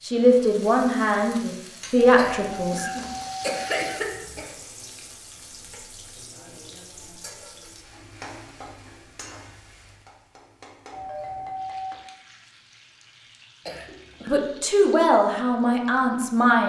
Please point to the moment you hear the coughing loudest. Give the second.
4 s.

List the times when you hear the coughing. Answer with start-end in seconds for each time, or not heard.
2.1-4.5, 13.7-14.3.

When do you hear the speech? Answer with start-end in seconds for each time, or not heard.
0.0-2.9, 14.2-16.6.